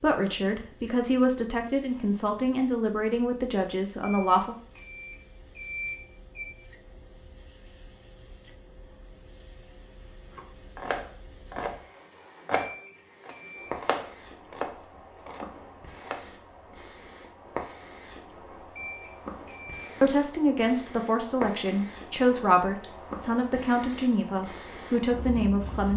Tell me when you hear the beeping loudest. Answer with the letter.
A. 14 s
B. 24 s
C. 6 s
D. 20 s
C.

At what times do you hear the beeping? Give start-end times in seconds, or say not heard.
4.0-6.5, 12.6-13.8, 18.8-19.9.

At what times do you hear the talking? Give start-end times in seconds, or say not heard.
0.0-4.5, 20.0-25.9.